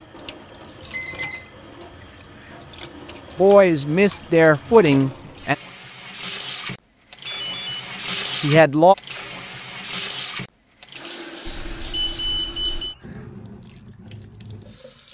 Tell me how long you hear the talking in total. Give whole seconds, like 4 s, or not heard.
3 s.